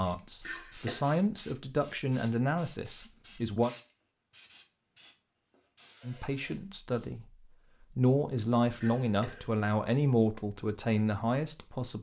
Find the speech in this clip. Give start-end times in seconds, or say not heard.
0.0-3.7, 6.0-11.9.